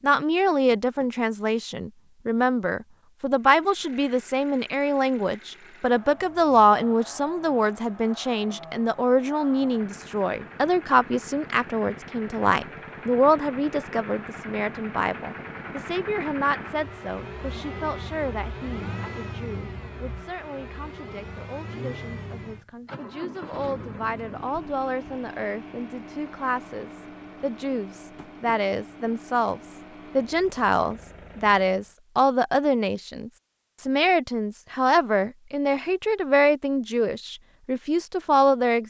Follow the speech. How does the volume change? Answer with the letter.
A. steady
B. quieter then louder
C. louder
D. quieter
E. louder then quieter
B.